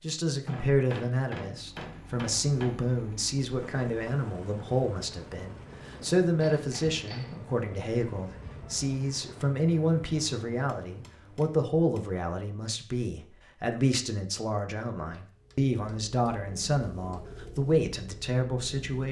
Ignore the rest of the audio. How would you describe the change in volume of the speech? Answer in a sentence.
The loudness of the speech stays about the same.